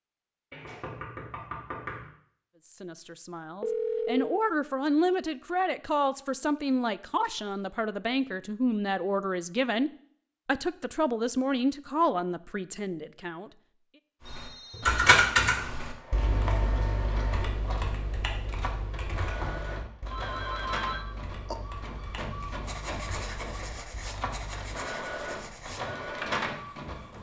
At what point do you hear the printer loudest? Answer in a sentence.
The loudest moment of the printer is at 26 seconds.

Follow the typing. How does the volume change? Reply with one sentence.
The volume of the typing goes down.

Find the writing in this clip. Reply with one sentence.
You can hear the writing from 22.4 to 27.1 s.